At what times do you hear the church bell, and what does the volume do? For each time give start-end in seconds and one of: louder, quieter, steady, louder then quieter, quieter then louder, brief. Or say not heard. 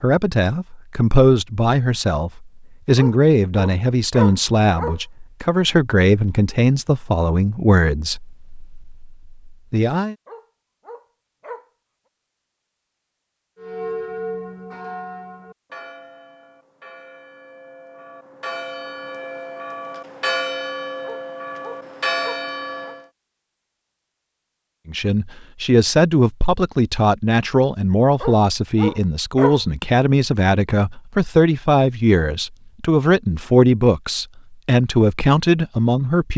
13.6-23.1 quieter then louder.